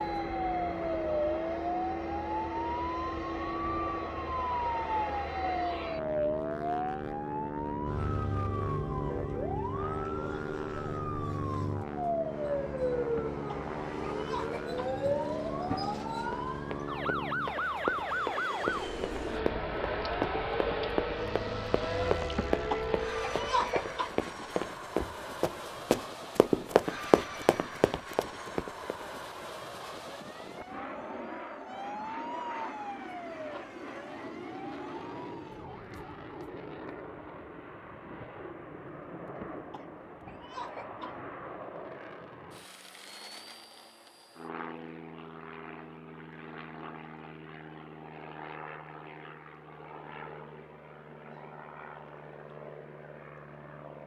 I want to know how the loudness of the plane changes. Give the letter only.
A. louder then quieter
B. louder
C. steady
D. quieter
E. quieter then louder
D.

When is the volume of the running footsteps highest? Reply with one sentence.
The volume of the running footsteps peaks at 27 seconds.